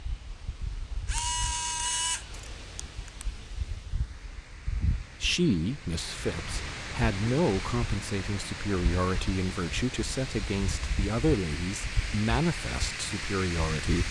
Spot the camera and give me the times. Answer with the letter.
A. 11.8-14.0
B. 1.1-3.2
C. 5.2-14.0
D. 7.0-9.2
B.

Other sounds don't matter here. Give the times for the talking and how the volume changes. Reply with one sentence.
You can hear the talking from 5.2 to 14.0 s, at a steady volume.